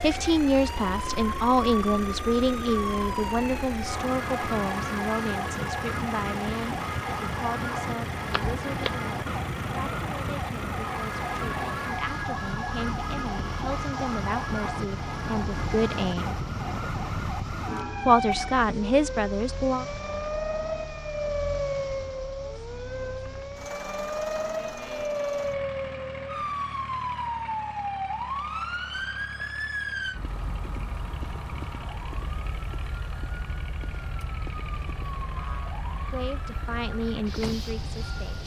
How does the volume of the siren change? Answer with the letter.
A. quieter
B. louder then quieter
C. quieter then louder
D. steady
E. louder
A.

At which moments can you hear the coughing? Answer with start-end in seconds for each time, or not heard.
not heard.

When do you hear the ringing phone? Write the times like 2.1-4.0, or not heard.
8.3-8.9.